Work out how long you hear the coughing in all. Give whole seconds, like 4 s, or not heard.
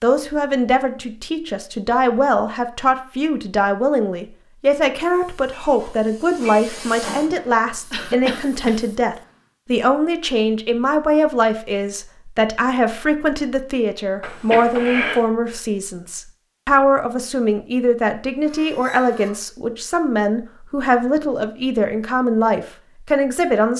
2 s.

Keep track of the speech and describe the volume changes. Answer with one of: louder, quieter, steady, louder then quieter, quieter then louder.
steady.